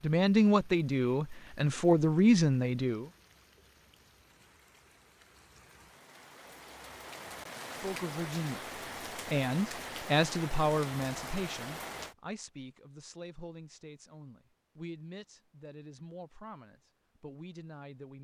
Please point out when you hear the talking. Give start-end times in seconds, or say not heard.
0.0-3.1, 7.7-18.1.